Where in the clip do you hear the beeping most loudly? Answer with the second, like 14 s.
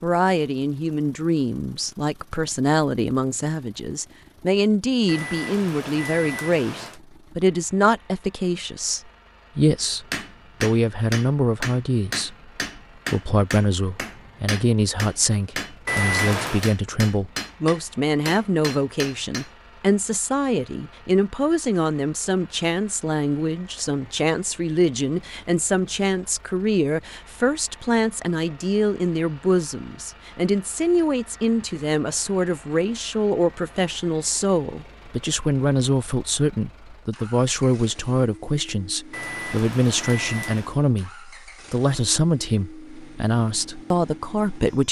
16 s.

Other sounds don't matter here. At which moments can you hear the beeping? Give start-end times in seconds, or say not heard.
5.0-7.0, 15.8-16.7, 39.1-40.8.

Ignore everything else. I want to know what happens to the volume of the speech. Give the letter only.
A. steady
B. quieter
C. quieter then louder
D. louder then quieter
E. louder
A.